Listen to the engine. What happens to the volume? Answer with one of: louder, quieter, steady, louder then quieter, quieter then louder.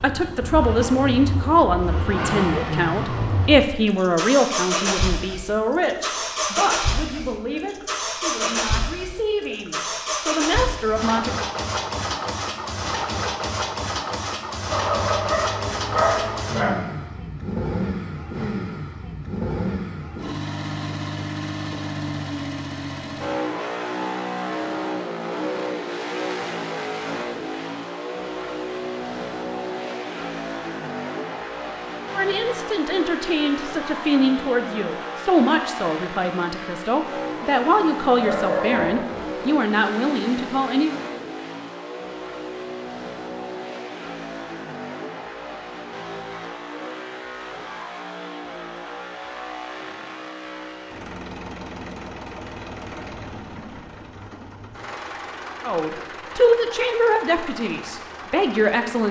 quieter.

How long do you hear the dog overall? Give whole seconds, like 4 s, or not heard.
3 s.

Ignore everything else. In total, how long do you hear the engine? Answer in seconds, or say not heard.
59 s.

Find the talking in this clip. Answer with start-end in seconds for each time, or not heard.
0.0-11.3, 32.1-40.9, 55.6-59.0.